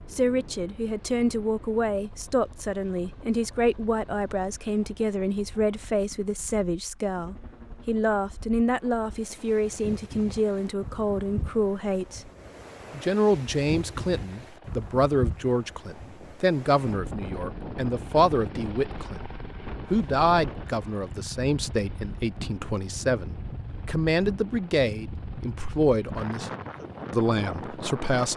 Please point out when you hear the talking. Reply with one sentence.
You can hear the talking from 0.1 to 12.3 s, from 12.9 to 26.5 s and from 27.1 to 28.3 s.